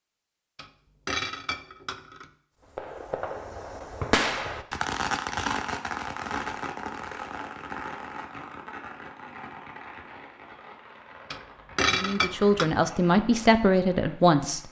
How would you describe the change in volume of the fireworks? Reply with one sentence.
The volume of the fireworks goes down.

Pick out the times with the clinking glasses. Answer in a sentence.
The clinking glasses can be heard from 0.6 to 2.2 s and from 11.3 to 12.7 s.